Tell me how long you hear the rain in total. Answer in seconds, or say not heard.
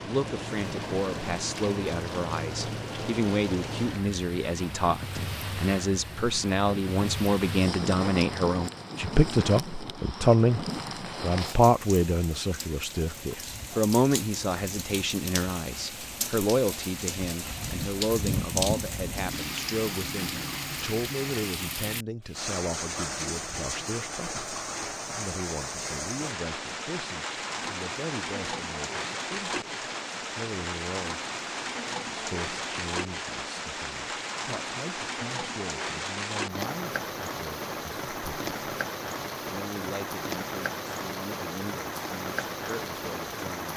44 s.